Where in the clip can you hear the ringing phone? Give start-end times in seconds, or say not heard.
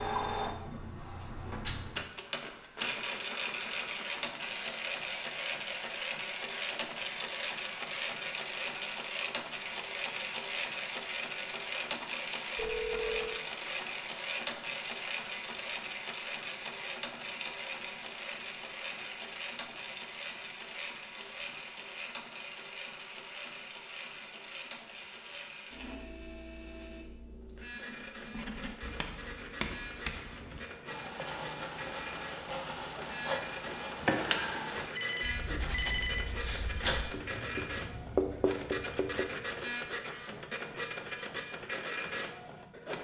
12.6-13.4, 35.0-36.3.